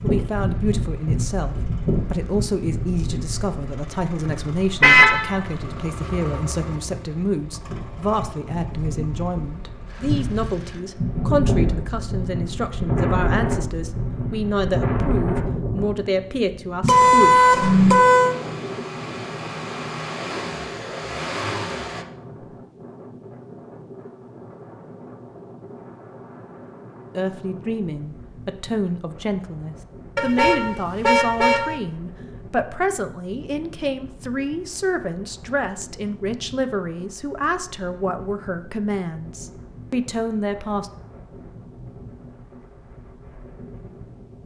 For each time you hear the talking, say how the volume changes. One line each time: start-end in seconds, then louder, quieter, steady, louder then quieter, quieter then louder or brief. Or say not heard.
0.0-17.4 steady
27.1-40.9 steady.